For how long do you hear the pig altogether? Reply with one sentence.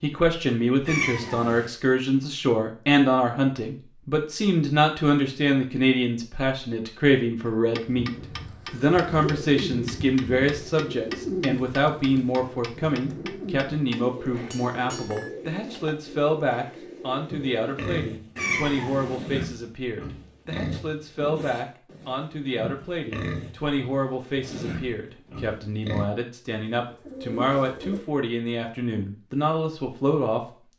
You can hear the pig for 9 seconds altogether.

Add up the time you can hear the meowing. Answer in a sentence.
You can hear the meowing for 2 seconds altogether.